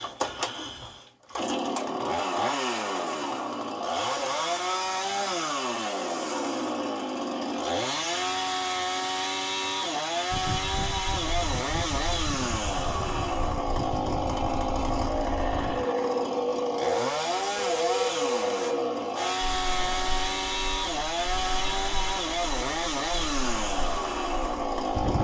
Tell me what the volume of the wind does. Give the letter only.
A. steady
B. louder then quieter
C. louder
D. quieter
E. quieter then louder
B.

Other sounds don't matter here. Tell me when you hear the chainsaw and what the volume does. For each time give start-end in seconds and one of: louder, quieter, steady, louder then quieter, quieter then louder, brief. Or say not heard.
0.0-25.1 steady.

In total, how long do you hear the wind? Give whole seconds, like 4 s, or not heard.
15 s.